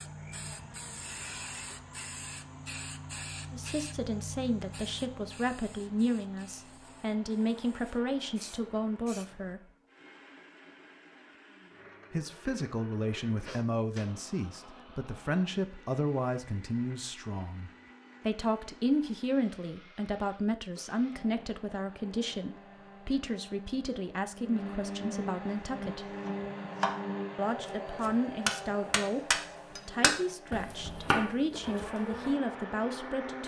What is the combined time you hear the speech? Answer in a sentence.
The speech can be heard for 26 seconds in total.